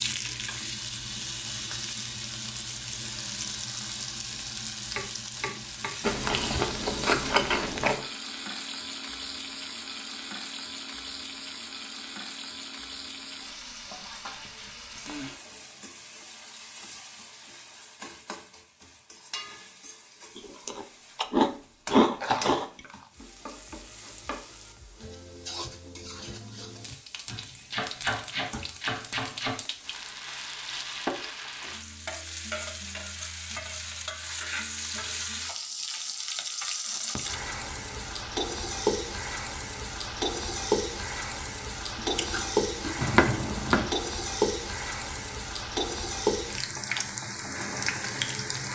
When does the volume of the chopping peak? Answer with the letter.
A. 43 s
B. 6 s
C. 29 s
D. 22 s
A.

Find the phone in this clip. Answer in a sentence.
You can't hear the phone here.